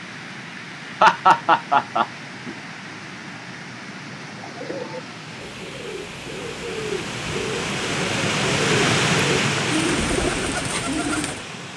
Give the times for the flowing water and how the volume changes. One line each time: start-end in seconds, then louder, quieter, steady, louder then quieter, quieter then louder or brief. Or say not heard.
0.0-11.7 louder.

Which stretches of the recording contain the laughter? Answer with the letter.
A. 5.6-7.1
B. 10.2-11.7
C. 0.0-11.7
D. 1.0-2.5
D.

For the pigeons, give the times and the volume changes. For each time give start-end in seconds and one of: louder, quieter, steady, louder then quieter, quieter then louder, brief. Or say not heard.
4.2-11.4 louder.